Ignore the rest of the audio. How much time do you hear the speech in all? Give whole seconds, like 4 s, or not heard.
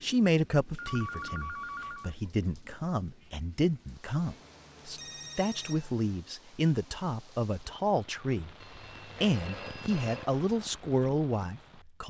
11 s.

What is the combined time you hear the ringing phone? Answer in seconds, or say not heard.
5 s.